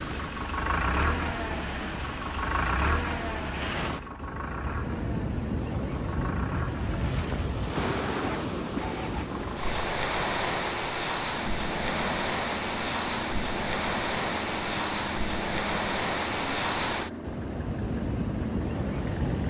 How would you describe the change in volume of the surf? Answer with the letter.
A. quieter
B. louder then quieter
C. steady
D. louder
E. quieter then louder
D.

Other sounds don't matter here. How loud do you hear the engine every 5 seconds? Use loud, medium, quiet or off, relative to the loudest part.
loud, medium, medium, medium.